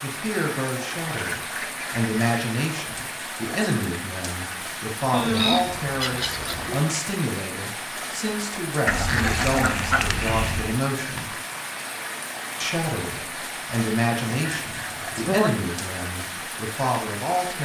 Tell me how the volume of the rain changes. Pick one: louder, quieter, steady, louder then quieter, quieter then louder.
steady.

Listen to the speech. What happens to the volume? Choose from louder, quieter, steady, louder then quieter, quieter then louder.
steady.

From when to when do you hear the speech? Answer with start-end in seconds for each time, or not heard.
0.0-11.3, 12.6-17.6.